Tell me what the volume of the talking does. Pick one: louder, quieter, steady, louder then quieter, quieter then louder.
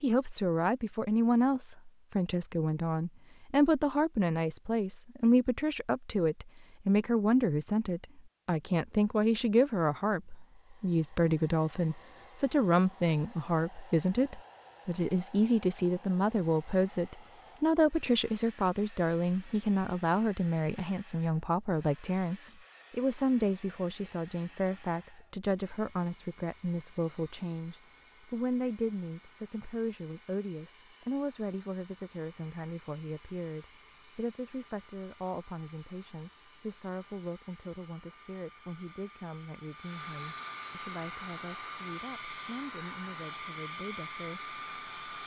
quieter.